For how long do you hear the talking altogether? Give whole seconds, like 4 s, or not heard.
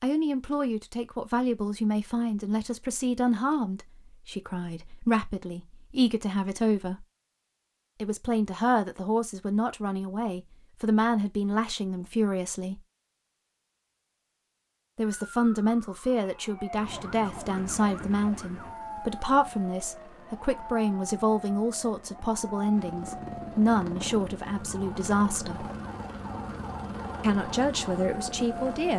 24 s.